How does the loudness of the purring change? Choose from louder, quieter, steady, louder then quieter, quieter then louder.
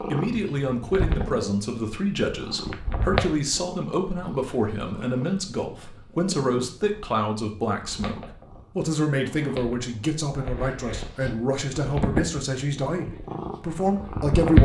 quieter then louder.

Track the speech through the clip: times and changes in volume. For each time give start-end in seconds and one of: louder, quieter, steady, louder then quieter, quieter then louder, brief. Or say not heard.
0.1-14.6 steady.